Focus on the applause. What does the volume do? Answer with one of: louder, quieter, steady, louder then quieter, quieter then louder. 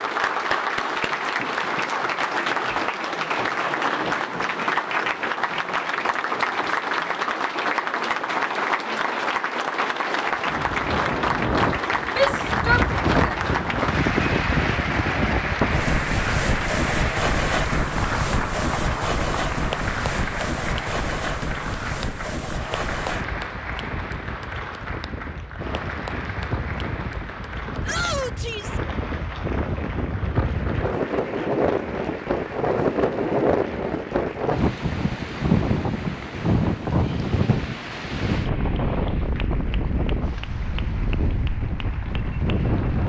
quieter.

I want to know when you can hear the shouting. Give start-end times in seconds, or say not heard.
12.1-13.3, 27.9-28.8.